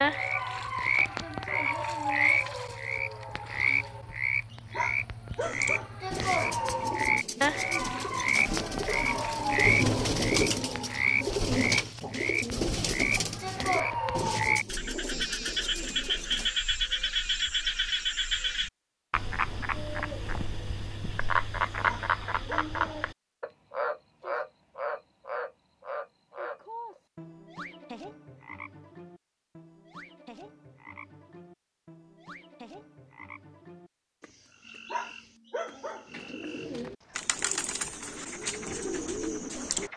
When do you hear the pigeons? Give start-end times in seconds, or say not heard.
5.3-16.5, 36.0-39.9.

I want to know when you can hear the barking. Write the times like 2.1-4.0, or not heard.
4.5-6.0, 21.8-22.8, 34.6-36.1.